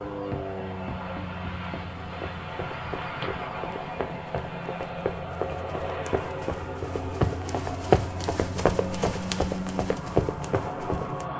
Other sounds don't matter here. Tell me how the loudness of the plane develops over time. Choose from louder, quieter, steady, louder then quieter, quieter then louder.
steady.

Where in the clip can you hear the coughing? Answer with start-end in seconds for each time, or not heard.
not heard.